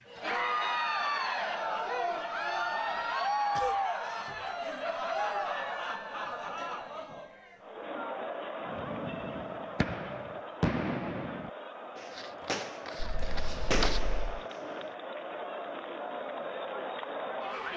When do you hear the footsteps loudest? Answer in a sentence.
The loudest moment of the footsteps is at 14 seconds.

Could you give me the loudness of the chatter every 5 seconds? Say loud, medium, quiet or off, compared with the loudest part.
loud, medium, medium, medium.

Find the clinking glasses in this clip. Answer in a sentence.
The clinking glasses can't be heard in this clip.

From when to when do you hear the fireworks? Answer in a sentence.
The fireworks can be heard from 8.7 to 14.9 s.